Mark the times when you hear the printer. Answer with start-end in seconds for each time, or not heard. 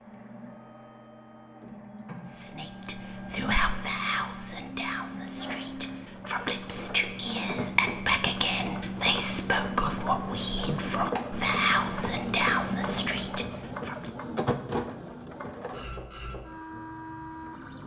0.0-17.8.